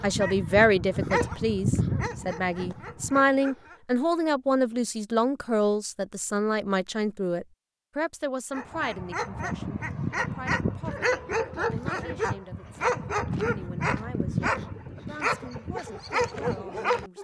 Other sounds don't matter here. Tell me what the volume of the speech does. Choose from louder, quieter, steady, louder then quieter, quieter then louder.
quieter.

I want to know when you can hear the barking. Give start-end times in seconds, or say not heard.
0.0-3.8, 8.5-17.1.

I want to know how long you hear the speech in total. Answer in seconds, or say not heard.
17 s.